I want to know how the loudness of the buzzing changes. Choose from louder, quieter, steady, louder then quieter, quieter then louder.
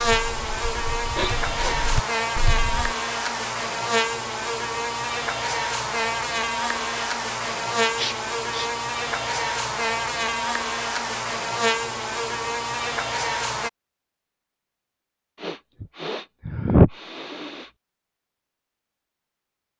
steady.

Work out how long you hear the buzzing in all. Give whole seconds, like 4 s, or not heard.
14 s.